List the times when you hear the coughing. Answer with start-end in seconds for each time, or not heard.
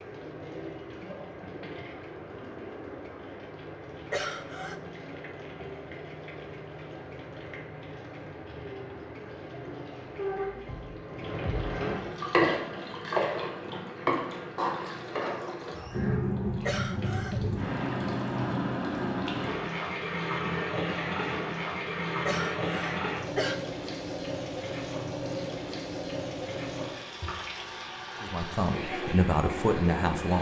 4.1-4.8, 16.6-17.6, 22.2-23.6.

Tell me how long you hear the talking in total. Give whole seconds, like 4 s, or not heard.
2 s.